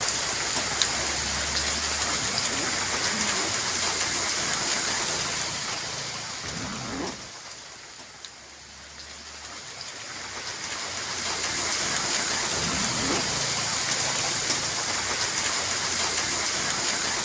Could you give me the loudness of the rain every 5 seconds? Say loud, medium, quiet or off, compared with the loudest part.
loud, medium, loud, loud.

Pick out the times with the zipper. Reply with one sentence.
You can hear the zipper from 2.0 to 3.7 s, from 6.4 to 7.3 s and from 12.5 to 13.4 s.